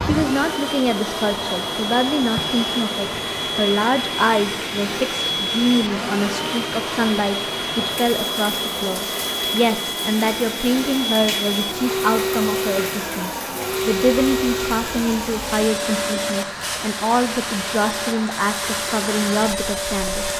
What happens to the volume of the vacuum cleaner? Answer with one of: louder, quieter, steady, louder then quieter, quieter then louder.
steady.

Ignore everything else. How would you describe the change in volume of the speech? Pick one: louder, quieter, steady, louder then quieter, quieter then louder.
steady.